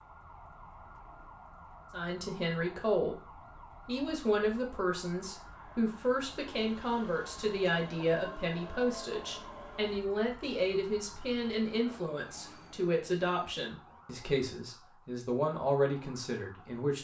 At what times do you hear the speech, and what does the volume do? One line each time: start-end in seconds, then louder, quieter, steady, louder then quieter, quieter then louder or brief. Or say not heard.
1.9-3.1 brief
3.9-16.9 steady.